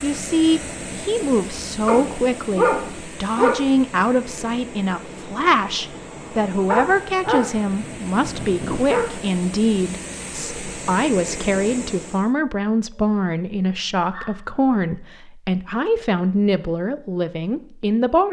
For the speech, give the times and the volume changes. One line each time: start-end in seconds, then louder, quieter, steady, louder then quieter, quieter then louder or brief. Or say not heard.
0.0-18.2 steady.